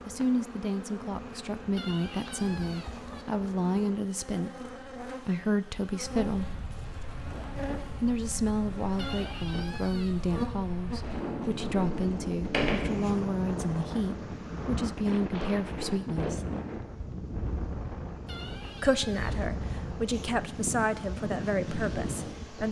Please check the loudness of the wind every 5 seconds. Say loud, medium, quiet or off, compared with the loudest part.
off, medium, loud, loud, loud.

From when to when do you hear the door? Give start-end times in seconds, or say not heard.
11.0-12.9.